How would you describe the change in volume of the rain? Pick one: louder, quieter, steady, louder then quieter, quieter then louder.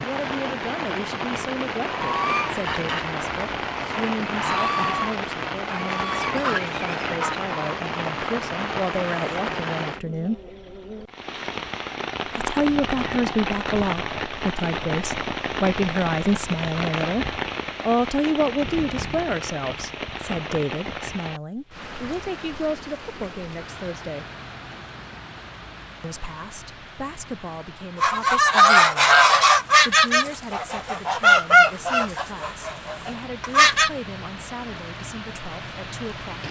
quieter.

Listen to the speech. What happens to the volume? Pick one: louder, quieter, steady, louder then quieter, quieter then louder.
louder then quieter.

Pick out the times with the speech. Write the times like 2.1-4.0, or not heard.
0.0-10.4, 12.2-24.2, 26.0-29.1, 29.8-36.4.